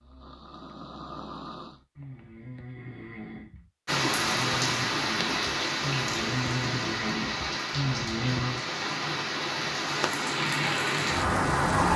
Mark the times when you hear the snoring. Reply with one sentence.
The snoring can be heard from 0.0 to 8.7 s.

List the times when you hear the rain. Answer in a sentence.
The rain can be heard from 3.9 to 11.9 s.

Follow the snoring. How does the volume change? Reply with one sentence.
The volume of the snoring goes up.